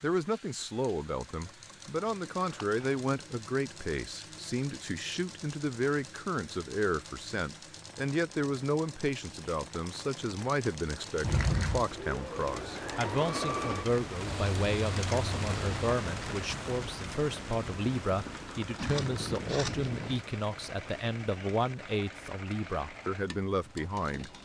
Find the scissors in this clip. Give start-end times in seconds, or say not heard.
2.4-3.0, 11.2-11.8, 18.8-20.2.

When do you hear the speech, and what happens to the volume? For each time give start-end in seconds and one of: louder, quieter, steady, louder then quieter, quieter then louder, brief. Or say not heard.
0.0-24.3 steady.